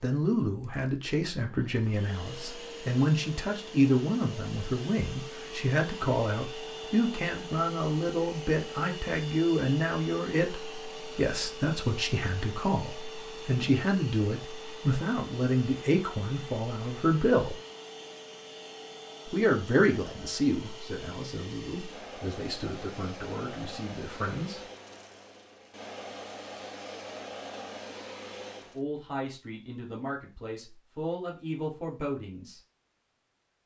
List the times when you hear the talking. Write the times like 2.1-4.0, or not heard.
0.0-17.6, 19.3-24.6, 28.6-32.6.